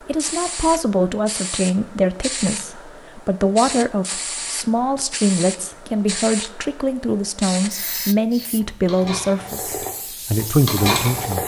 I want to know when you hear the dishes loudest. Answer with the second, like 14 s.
11 s.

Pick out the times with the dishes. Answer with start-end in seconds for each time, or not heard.
8.5-11.4.